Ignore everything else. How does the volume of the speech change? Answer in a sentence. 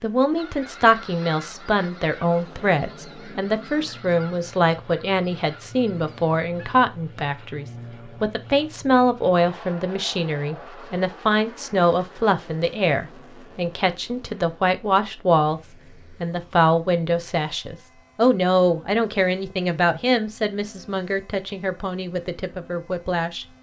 The volume of the speech stays about the same.